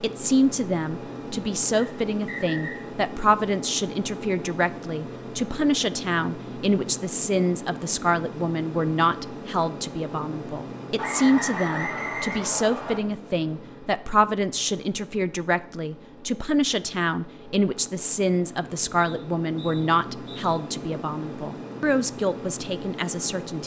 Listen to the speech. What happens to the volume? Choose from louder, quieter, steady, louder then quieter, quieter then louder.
steady.